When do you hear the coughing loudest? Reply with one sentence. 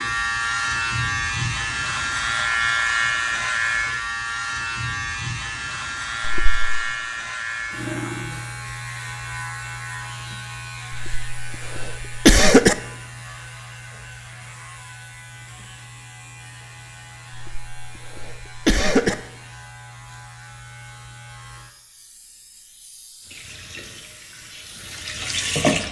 The loudest moment of the coughing is at 12 seconds.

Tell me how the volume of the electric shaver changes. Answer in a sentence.
The volume of the electric shaver goes down.